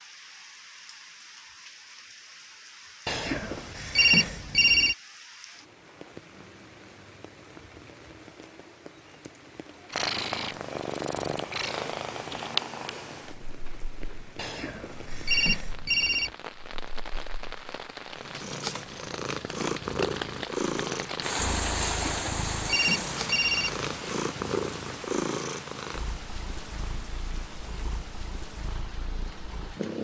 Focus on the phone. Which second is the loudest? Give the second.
4 s.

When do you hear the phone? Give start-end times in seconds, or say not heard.
3.0-5.0, 14.3-16.3, 21.8-23.9.